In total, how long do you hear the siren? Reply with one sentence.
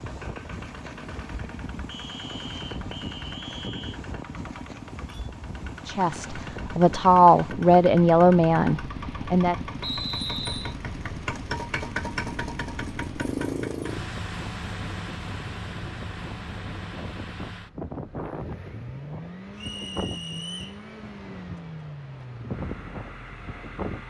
The siren can't be heard in this clip.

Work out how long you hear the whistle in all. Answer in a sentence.
The whistle can be heard for 4 seconds in total.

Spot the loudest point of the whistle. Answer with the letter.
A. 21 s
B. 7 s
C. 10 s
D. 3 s
C.